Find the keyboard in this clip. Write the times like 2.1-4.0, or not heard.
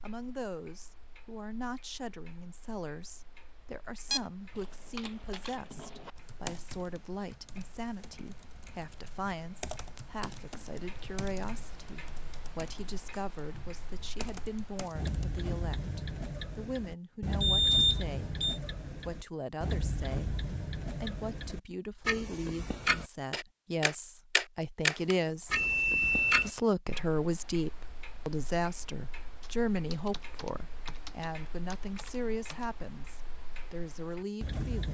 4.5-15.2, 29.4-32.6.